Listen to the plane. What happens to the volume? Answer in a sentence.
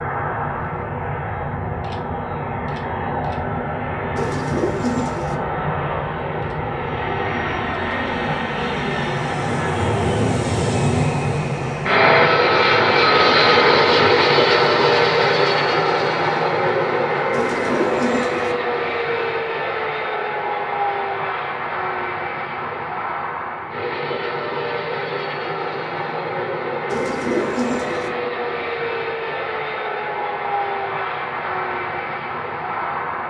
The loudness of the plane goes up, then down.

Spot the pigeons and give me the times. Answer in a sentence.
The pigeons can be heard from 4.2 to 5.3 s, from 17.3 to 18.6 s and from 26.9 to 28.1 s.